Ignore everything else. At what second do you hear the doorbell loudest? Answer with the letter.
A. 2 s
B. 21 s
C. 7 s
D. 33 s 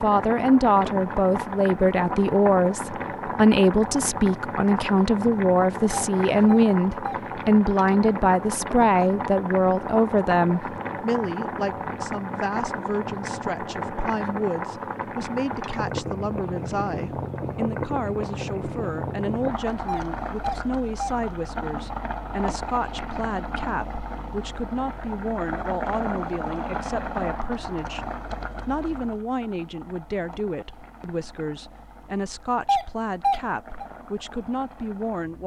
D.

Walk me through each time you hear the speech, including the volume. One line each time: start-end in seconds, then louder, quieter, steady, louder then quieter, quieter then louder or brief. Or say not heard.
0.0-35.4 quieter.